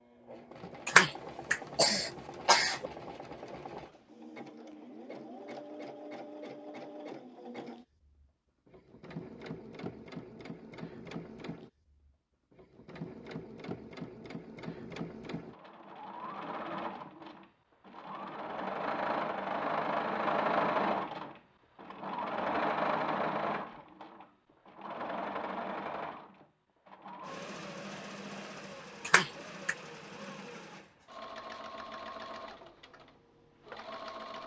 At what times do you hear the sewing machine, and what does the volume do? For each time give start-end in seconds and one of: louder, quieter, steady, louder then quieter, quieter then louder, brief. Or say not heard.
0.0-34.4 louder then quieter.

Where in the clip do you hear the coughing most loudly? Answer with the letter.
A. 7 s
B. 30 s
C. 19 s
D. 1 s
D.